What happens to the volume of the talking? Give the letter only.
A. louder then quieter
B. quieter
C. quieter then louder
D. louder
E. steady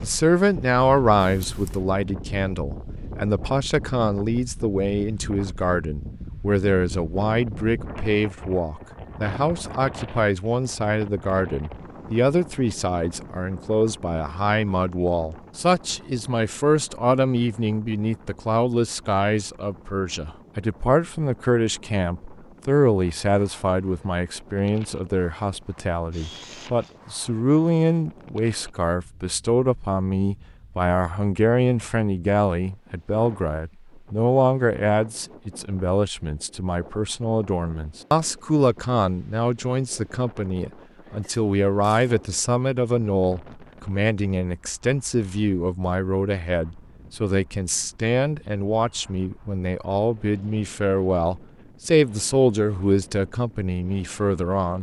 E.